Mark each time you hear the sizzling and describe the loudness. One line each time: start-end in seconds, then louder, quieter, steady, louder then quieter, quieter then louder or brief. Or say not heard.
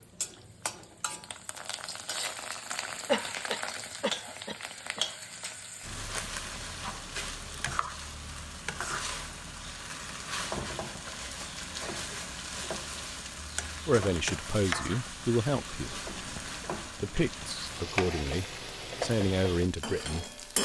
0.0-20.6 steady.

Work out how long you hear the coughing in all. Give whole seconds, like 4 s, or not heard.
2 s.